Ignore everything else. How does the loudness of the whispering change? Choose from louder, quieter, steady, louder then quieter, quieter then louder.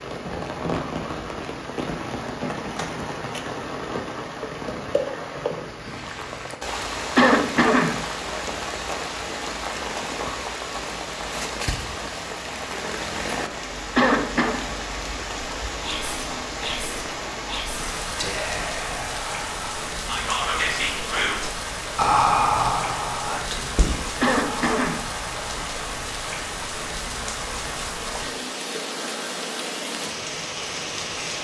louder then quieter.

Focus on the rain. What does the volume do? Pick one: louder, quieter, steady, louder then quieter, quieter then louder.
steady.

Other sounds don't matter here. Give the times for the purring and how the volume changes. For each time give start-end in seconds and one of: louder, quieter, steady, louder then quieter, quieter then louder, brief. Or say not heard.
not heard.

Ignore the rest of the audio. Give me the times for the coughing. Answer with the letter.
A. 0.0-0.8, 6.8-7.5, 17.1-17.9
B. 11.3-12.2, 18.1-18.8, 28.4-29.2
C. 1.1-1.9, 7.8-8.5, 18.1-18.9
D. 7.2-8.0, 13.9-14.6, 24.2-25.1
D.